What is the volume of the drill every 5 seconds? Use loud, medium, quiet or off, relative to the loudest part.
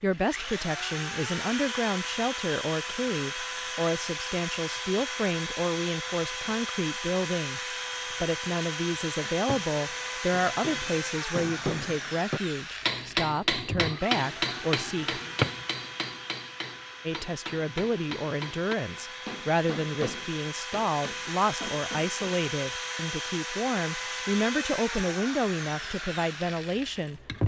loud, loud, loud, medium, loud, loud.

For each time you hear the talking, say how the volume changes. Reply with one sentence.
You can hear the talking from 0.0 to 15.2 s, at a steady volume; and from 17.1 to 27.4 s, at a steady volume.